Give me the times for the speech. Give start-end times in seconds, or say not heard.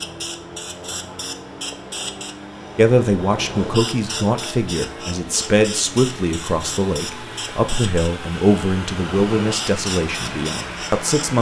2.8-11.3.